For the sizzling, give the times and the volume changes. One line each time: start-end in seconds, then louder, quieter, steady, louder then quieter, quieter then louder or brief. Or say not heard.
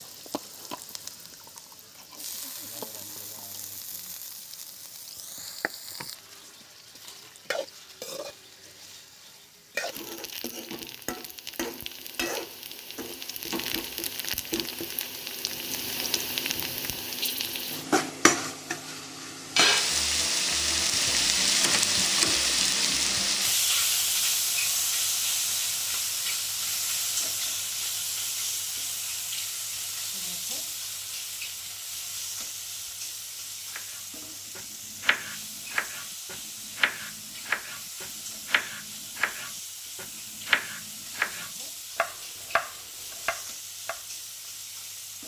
0.0-45.2 louder then quieter.